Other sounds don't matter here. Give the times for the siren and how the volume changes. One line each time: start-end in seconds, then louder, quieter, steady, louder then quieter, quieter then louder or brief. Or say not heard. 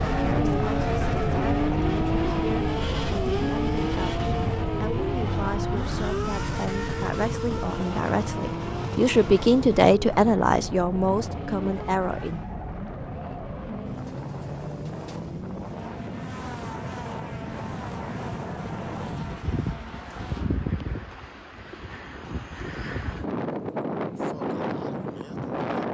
not heard.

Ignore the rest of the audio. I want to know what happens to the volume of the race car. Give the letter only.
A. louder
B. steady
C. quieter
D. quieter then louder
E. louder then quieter
C.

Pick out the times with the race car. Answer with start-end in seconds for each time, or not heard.
0.0-20.5.